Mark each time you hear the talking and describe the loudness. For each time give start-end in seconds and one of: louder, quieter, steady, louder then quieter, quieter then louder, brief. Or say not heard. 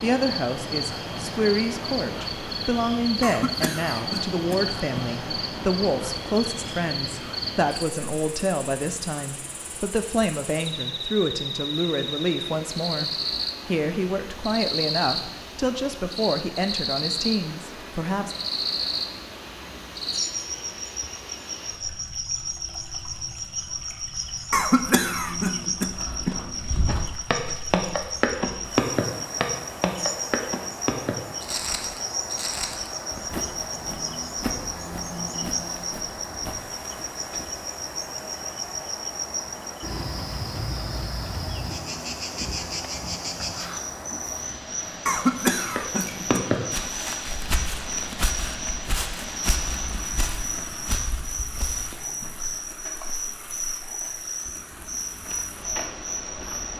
0.0-18.4 steady.